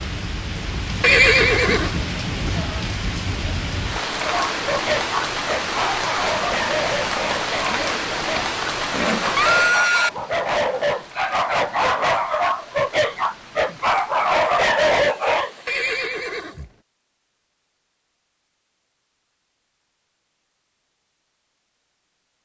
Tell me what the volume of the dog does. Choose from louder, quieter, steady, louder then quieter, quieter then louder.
louder.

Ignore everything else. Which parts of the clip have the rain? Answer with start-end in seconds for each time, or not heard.
0.0-16.1.